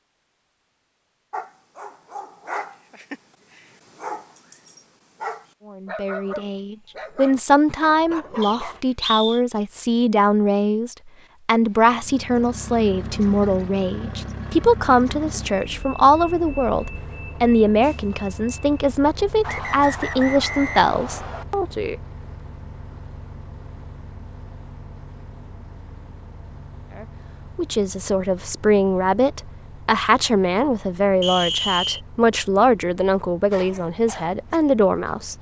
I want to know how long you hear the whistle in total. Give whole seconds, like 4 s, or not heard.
4 s.